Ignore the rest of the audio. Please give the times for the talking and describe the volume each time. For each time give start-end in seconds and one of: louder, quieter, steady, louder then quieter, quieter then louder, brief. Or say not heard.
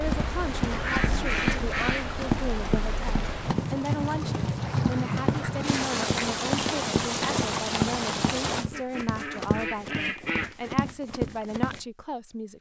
0.0-12.5 steady.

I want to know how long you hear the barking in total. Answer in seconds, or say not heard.
not heard.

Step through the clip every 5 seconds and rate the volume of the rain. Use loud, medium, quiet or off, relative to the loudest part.
loud, loud, off.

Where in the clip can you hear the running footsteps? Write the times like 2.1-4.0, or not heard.
0.1-11.8.